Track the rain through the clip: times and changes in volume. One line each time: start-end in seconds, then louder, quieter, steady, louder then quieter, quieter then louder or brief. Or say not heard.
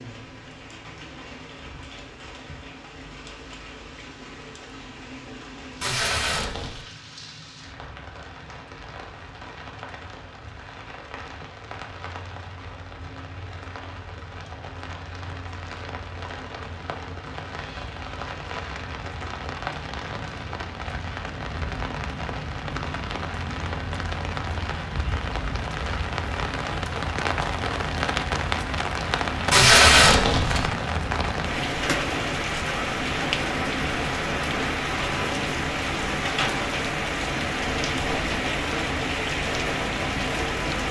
0.0-40.8 louder.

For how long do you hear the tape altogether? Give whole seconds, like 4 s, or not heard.
2 s.